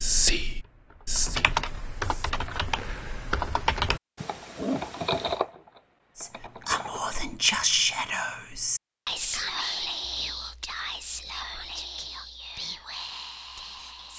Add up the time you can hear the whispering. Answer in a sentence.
The whispering can be heard for 10 seconds in total.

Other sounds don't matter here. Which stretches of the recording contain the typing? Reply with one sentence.
The typing can be heard from 0.4 to 7.1 s.